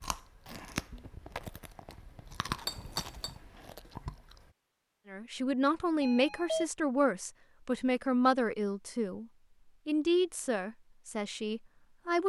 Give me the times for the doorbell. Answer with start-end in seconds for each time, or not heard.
6.0-6.7.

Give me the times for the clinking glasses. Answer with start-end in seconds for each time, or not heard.
2.6-3.4.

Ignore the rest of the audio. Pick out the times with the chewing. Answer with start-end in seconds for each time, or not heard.
0.0-4.5.